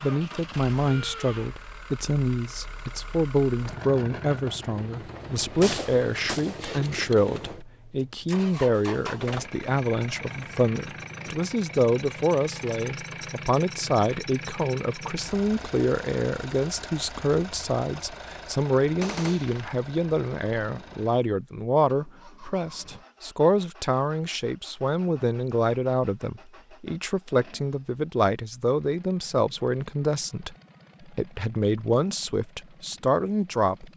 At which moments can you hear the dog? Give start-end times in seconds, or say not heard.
not heard.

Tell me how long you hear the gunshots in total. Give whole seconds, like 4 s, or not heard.
2 s.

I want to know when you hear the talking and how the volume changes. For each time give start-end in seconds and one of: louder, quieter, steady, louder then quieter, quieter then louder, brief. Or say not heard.
0.0-33.9 steady.